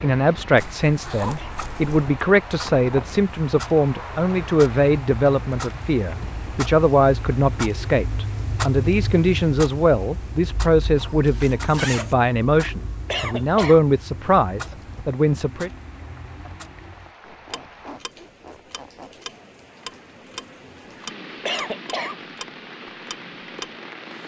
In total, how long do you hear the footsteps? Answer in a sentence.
You can't hear the footsteps here.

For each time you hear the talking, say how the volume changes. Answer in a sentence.
You can hear the talking from 0.0 to 15.7 s, at a steady volume.